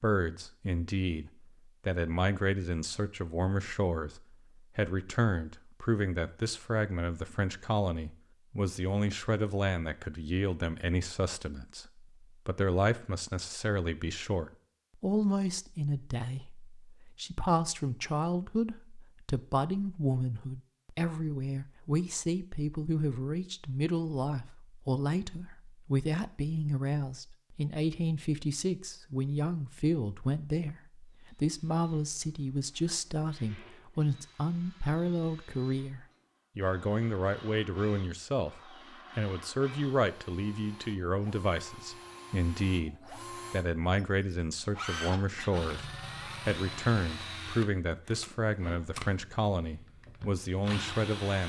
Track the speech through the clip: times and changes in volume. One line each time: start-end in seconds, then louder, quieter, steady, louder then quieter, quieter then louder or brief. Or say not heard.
0.0-51.4 steady.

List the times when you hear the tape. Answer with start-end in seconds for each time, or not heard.
47.9-49.2.